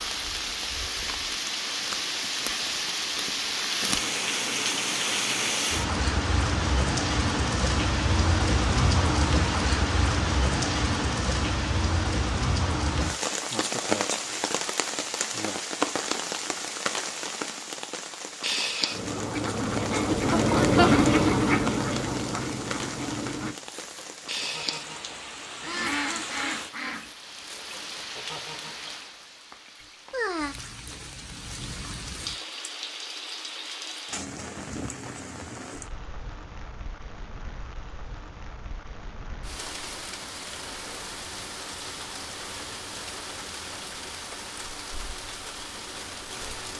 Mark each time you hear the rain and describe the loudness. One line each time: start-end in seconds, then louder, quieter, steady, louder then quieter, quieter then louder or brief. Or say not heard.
0.0-46.7 quieter.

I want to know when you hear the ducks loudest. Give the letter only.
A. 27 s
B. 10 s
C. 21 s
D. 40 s
C.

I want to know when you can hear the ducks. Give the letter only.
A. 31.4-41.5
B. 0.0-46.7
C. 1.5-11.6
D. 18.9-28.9
D.